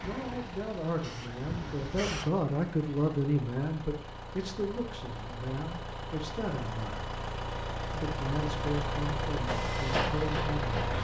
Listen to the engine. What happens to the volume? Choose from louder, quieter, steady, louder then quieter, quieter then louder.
louder.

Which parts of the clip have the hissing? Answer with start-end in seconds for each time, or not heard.
0.0-2.3, 9.4-10.9.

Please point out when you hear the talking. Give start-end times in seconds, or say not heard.
0.0-7.0, 7.9-10.7.